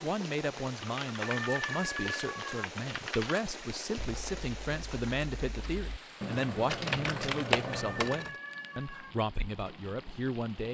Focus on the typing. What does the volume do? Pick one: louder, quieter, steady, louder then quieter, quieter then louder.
quieter then louder.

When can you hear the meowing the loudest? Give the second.
2 s.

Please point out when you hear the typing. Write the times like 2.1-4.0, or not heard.
0.7-8.3.